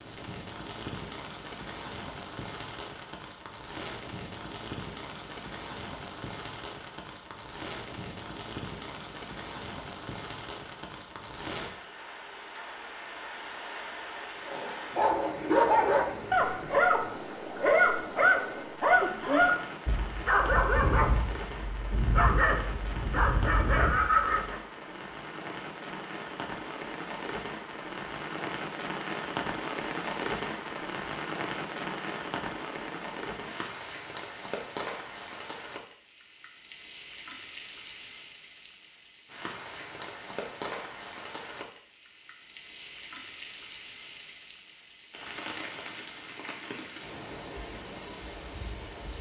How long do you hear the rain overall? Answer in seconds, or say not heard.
49 s.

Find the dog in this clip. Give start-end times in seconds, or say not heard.
14.4-24.6.